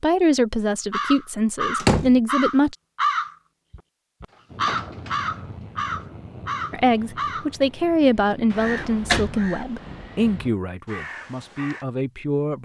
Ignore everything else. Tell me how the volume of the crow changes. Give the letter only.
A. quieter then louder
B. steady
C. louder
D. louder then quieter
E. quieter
E.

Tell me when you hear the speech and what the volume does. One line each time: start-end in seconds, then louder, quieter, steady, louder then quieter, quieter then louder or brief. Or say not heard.
0.0-2.8 brief
6.7-12.6 quieter.